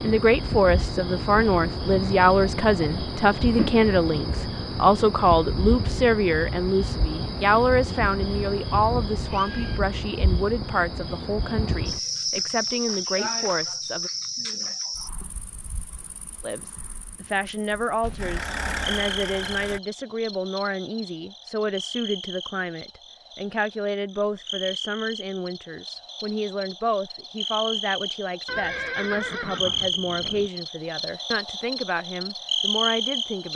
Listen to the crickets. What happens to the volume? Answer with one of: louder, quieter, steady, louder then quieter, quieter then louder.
quieter then louder.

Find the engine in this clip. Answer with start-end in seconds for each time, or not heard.
18.1-19.8.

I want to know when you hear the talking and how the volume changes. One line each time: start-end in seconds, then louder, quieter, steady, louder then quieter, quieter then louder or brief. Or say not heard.
0.0-14.1 quieter
16.4-33.5 steady.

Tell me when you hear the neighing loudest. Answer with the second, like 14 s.
29 s.